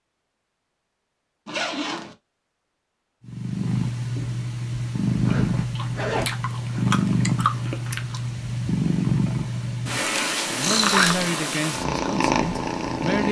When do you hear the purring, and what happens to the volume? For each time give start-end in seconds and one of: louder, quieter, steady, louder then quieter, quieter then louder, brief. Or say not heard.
3.2-13.2 steady.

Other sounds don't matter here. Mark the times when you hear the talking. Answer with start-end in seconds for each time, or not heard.
10.4-13.2.